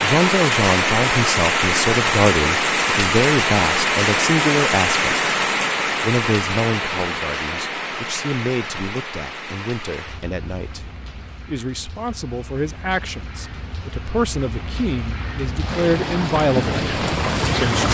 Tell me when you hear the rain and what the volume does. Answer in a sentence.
You can hear the rain from 0.0 to 17.8 s, getting quieter then louder.